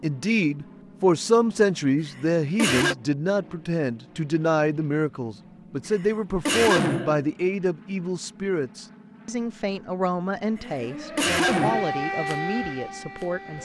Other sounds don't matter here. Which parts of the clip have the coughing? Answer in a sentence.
The coughing can be heard from 2.0 to 3.0 s, from 5.9 to 7.2 s and from 10.7 to 11.8 s.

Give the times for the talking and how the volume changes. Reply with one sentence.
You can hear the talking from 0.0 to 13.5 s, getting quieter.